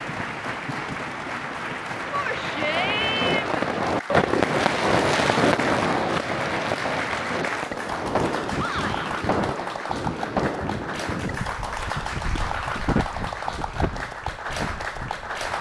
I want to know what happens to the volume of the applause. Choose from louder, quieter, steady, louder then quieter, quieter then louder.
steady.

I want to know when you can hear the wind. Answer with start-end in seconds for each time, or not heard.
8.0-15.5.